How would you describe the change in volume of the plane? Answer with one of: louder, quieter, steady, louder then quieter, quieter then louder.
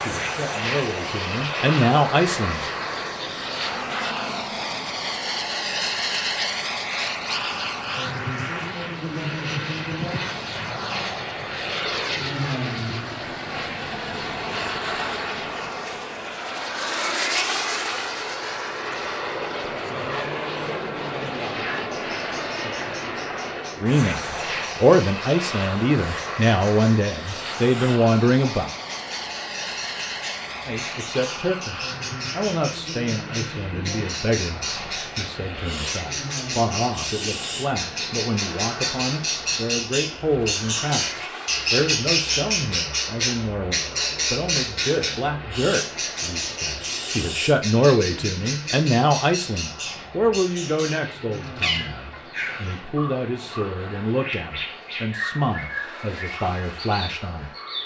quieter.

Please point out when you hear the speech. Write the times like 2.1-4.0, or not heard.
0.0-2.6, 23.8-28.7, 30.6-57.5.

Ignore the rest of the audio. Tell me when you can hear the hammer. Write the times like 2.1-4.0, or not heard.
not heard.